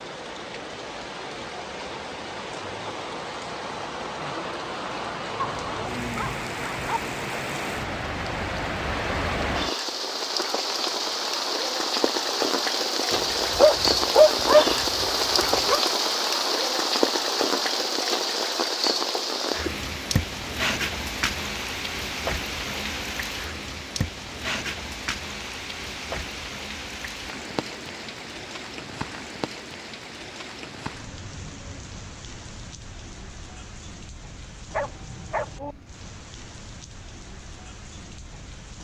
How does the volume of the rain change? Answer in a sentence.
The volume of the rain goes up, then down.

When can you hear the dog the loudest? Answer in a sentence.
The loudest moment of the dog is at 14 seconds.